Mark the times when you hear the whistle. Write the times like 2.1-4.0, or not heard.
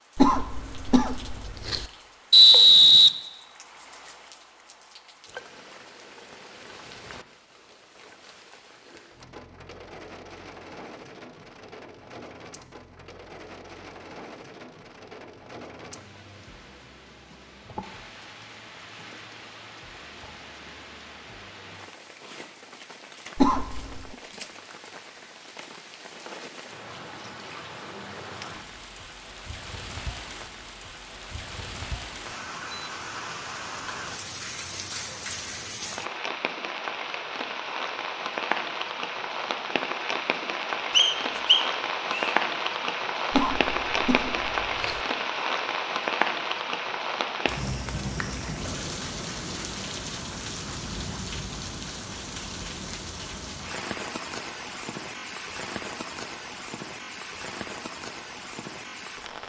2.3-3.1, 40.9-42.3.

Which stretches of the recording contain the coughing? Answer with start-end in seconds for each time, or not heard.
0.1-1.9, 23.4-24.1, 43.3-45.0.